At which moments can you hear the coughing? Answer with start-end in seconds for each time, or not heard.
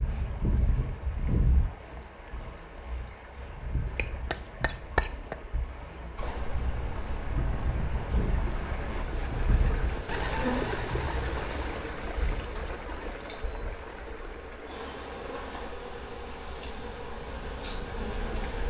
4.0-5.3.